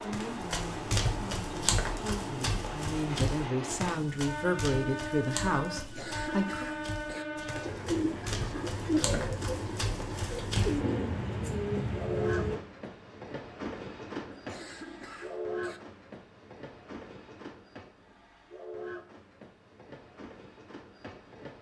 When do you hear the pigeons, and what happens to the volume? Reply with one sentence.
The pigeons can be heard from 7.4 to 12.6 s, getting quieter then louder.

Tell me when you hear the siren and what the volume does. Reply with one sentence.
The siren can't be heard in this clip.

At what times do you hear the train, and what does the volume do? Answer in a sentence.
You can hear the train from 0.0 to 21.5 s, getting quieter.